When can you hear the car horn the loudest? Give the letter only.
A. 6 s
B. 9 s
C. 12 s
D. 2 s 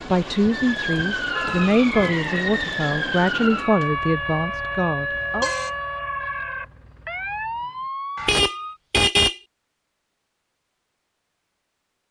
B.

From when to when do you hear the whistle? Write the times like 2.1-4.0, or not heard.
not heard.